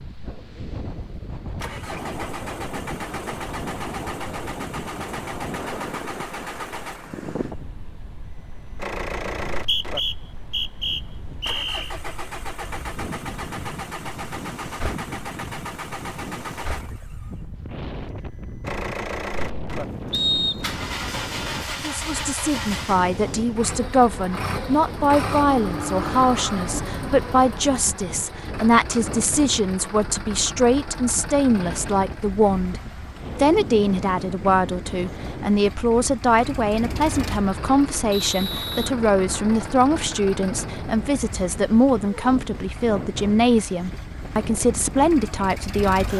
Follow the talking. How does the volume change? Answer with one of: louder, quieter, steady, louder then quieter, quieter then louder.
steady.